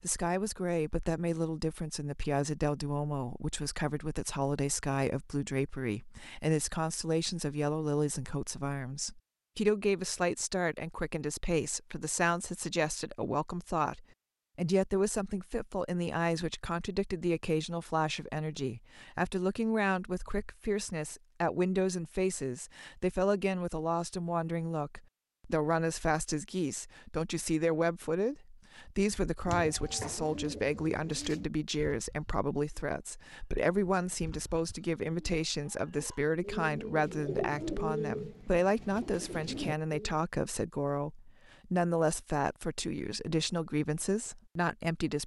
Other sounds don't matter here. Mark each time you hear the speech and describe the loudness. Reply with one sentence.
The speech can be heard from 0.0 to 45.2 s, at a steady volume.